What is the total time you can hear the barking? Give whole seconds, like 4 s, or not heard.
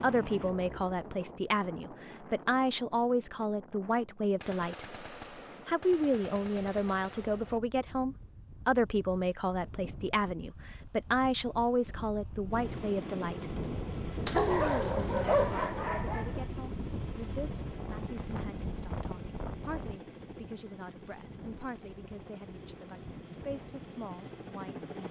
2 s.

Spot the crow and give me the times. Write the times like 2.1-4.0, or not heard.
not heard.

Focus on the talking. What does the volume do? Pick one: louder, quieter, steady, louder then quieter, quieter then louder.
quieter.